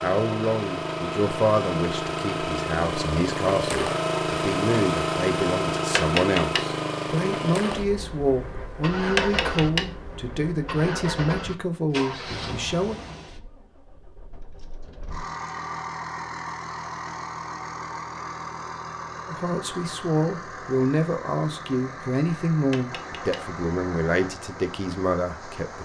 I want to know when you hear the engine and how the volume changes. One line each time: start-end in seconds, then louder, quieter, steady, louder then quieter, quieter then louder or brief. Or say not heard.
0.0-25.8 quieter.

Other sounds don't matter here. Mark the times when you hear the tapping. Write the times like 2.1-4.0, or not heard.
6.0-6.7, 9.2-9.8, 22.7-23.4.